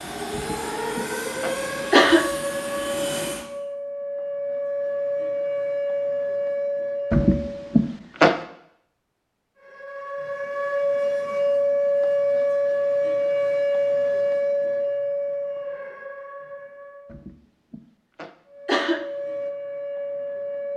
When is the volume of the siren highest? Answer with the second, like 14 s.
12 s.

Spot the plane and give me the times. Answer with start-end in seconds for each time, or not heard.
0.0-3.5.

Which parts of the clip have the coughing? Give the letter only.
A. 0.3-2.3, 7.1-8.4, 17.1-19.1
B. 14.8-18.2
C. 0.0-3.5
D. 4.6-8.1
A.